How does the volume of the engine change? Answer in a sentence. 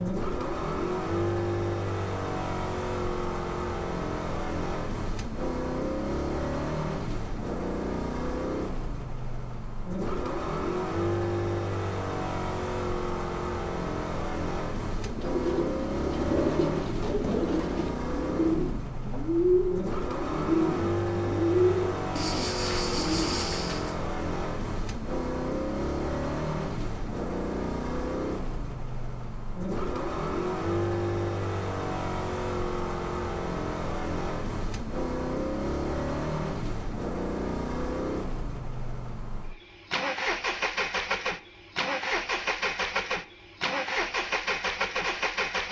The volume of the engine stays about the same.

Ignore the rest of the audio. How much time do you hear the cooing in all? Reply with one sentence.
The cooing can be heard for 9 seconds in total.